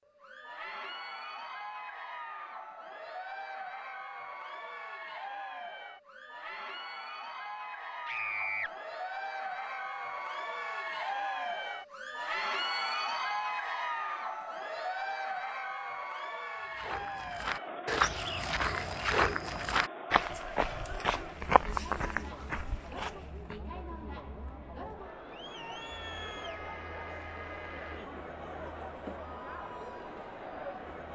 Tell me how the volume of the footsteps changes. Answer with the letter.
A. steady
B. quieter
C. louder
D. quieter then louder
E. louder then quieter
B.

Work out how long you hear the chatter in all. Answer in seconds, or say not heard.
31 s.